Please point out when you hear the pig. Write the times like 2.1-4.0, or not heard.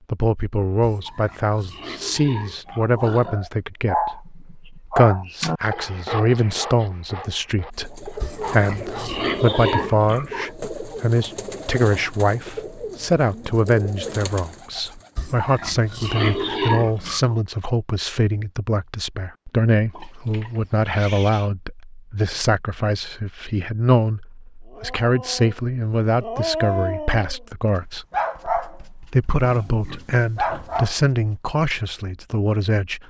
0.8-3.4, 8.2-10.5, 15.2-17.4, 19.9-21.5, 29.4-30.9.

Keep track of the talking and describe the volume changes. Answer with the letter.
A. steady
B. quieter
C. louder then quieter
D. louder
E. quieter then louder
A.